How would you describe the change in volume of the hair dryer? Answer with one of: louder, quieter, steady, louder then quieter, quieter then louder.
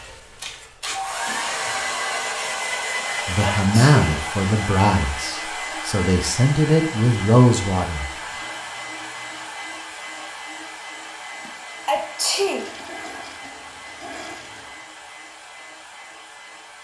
quieter.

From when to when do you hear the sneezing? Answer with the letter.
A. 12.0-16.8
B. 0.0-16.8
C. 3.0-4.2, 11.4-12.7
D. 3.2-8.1
C.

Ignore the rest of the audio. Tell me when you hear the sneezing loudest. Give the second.
12 s.